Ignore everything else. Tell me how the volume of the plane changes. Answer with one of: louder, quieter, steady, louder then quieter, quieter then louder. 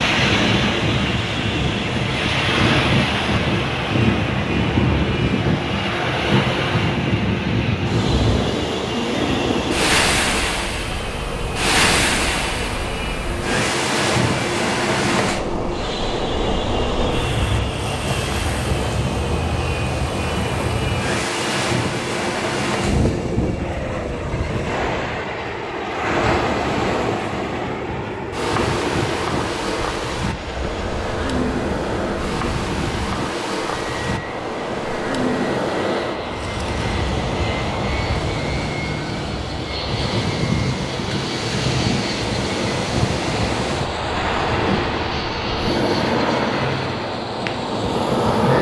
steady.